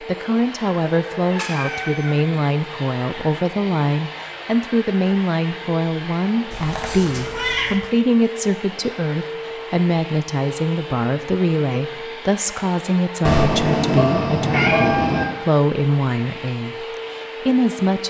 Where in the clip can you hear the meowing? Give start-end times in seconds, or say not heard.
1.3-2.4, 6.5-7.8, 13.2-15.2.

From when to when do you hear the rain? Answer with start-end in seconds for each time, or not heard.
not heard.